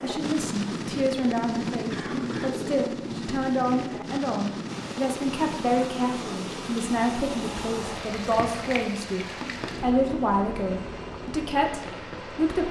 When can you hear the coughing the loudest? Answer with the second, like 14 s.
2 s.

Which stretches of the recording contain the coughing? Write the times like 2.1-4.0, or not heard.
1.9-2.6, 9.2-9.8.